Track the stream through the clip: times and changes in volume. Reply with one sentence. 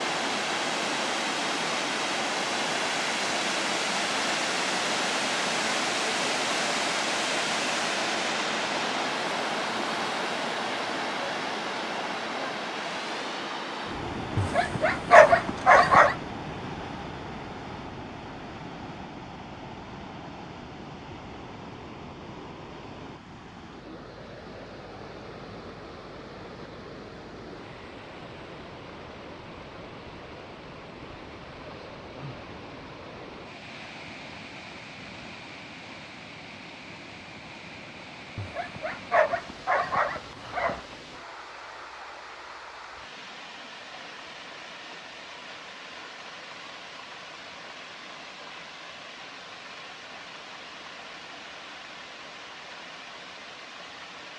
You can hear the stream from 0.0 to 54.3 s, getting quieter.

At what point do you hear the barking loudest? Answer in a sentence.
The loudest moment of the barking is at 15 seconds.